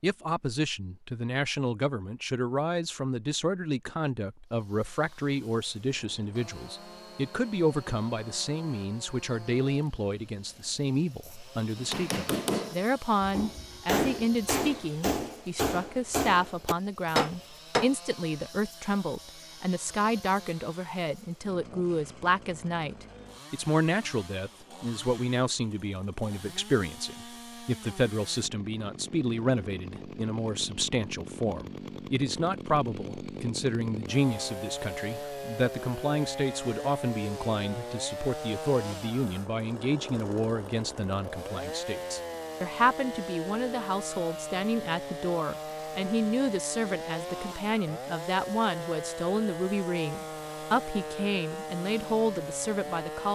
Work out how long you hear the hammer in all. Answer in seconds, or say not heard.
6 s.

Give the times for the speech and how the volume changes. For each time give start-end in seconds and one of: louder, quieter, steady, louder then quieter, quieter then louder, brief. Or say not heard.
0.0-53.3 steady.